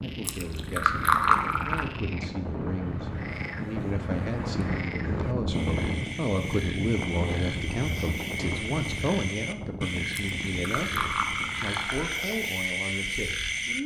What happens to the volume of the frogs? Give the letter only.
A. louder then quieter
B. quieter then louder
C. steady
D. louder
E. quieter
D.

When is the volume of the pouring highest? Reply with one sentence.
The loudest moment of the pouring is at 1 second.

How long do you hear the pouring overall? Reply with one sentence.
You can hear the pouring for 4 seconds altogether.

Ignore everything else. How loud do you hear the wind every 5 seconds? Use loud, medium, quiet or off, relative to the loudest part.
loud, loud, medium.